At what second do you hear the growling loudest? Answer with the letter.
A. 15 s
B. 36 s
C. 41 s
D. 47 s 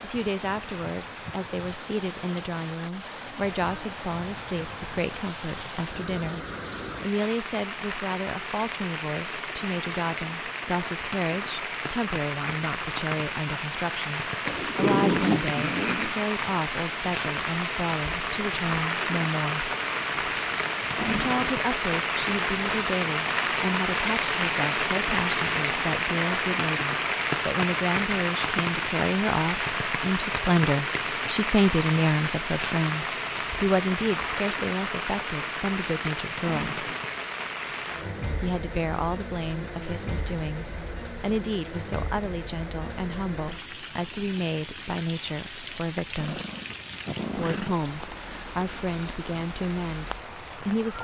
A.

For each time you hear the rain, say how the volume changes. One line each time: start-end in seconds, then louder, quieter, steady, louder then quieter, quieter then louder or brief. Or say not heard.
0.0-51.0 louder then quieter.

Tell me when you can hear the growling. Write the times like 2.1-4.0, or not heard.
14.4-16.2, 46.1-47.8.